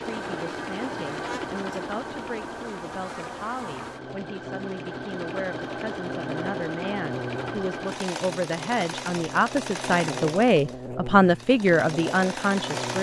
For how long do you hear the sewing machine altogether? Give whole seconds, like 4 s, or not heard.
13 s.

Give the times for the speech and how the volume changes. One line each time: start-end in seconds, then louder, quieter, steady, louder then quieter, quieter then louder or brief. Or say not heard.
0.0-12.9 louder.